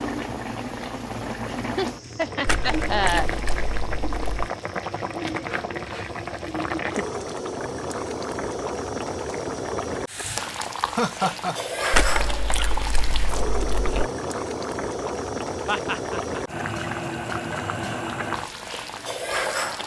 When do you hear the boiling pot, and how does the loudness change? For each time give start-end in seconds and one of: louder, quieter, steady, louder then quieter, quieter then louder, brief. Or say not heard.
0.0-19.8 steady.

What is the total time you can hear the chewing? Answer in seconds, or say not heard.
4 s.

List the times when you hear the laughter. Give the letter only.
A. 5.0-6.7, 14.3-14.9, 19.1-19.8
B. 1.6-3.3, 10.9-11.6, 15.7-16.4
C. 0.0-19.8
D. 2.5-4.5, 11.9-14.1
B.